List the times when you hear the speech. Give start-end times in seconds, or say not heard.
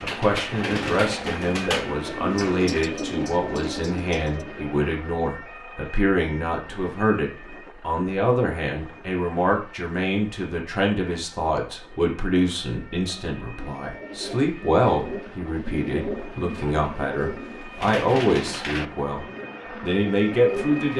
0.0-20.9.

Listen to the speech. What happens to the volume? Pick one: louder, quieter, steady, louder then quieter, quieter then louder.
steady.